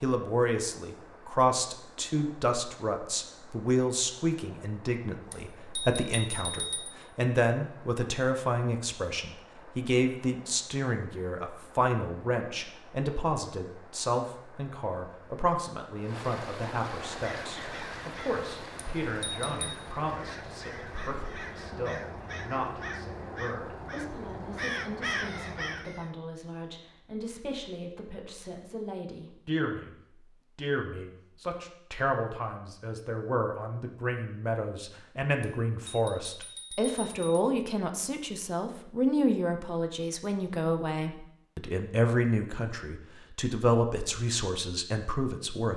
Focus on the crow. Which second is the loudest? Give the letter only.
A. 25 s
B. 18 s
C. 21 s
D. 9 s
A.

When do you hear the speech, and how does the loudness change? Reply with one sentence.
You can hear the speech from 0.0 to 45.7 s, getting quieter then louder.